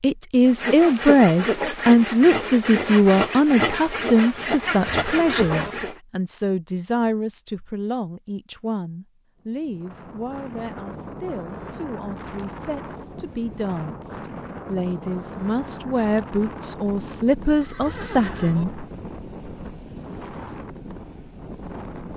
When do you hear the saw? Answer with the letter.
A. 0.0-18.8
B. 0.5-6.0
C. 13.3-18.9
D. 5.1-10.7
B.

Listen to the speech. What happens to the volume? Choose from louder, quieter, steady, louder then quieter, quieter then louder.
quieter then louder.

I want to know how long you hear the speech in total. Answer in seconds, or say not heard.
19 s.